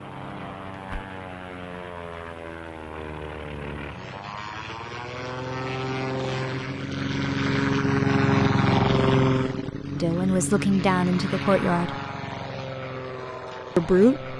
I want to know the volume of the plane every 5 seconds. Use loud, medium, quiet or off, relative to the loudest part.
quiet, loud, medium.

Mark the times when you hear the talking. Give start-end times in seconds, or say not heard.
9.9-11.9, 13.8-14.3.